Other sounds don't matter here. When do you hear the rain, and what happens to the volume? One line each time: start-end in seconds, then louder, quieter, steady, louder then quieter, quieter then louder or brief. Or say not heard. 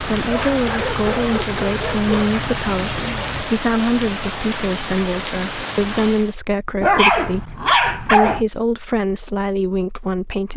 0.0-6.3 steady.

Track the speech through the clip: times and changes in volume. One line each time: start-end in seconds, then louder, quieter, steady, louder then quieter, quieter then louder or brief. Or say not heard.
0.0-10.5 steady.